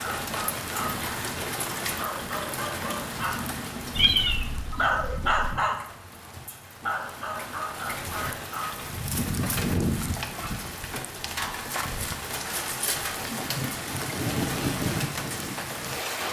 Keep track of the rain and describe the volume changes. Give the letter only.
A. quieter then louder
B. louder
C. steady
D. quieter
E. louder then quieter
A.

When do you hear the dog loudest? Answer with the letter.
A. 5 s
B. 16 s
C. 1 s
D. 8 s
A.